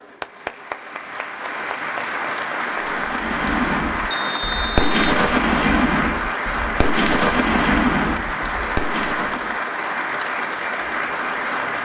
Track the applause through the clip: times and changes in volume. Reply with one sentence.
You can hear the applause from 0.0 to 11.7 s, at a steady volume.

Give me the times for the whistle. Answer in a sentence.
The whistle can be heard from 4.1 to 5.0 s.